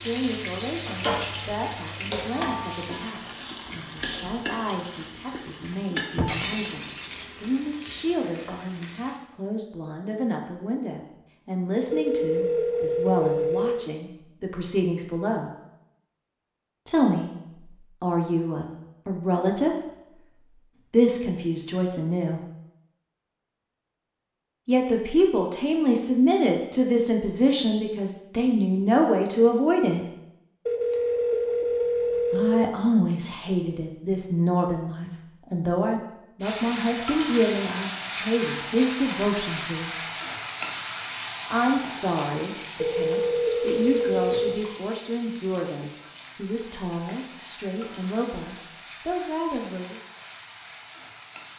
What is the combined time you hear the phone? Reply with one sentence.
The phone can be heard for 6 seconds in total.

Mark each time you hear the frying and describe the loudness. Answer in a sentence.
You can hear the frying from 0.0 to 9.2 s, getting quieter; and from 36.4 to 51.5 s, getting quieter.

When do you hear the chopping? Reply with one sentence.
The chopping can't be heard in this clip.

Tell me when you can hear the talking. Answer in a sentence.
You can hear the talking from 0.0 to 15.5 s, from 16.9 to 19.8 s, from 20.9 to 22.4 s, from 24.6 to 30.1 s, from 32.3 to 39.9 s and from 41.5 to 50.0 s.